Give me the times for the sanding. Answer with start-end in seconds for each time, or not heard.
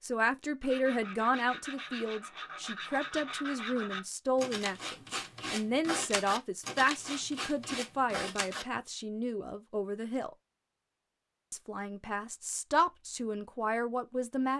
0.6-8.7.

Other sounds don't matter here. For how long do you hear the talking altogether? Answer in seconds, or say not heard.
13 s.